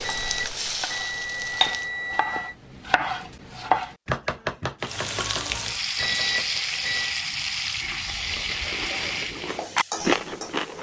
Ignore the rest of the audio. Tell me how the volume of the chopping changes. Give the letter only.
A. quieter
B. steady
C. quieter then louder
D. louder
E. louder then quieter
E.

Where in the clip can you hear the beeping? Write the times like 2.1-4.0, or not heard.
0.0-2.5, 6.0-7.2.